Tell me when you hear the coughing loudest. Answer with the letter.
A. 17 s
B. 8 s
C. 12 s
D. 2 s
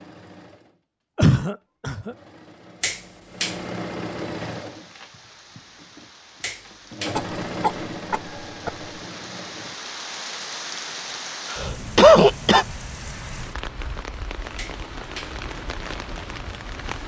C.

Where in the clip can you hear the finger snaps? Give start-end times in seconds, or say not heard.
2.8-3.6, 6.4-7.2, 14.6-15.4.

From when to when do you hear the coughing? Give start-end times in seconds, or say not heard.
1.1-2.1, 7.2-8.8, 11.5-12.7.